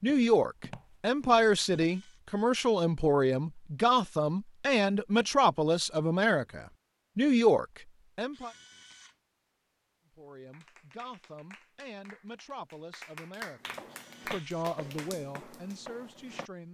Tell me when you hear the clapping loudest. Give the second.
14 s.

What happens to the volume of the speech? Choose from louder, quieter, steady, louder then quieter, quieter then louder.
quieter then louder.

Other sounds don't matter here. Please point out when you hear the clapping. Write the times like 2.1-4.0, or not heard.
10.5-15.8.